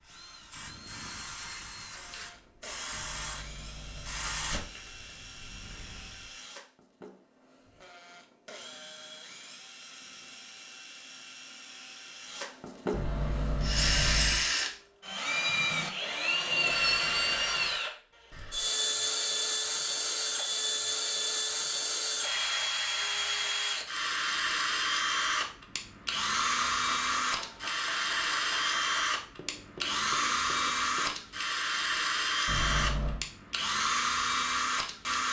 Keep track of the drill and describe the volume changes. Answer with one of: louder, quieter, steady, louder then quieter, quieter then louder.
louder.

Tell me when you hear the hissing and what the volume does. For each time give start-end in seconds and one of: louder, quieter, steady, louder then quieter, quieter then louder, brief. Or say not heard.
0.0-6.3 louder then quieter.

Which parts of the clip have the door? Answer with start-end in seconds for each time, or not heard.
2.9-4.7, 12.9-14.4, 32.5-33.2.